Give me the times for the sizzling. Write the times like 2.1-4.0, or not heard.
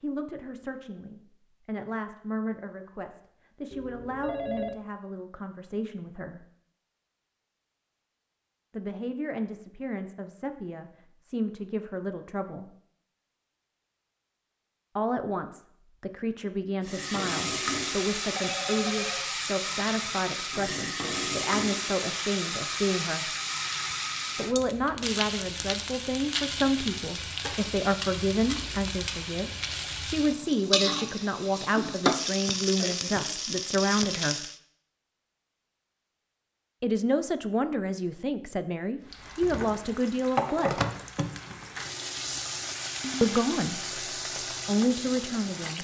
16.9-34.6, 39.0-45.7.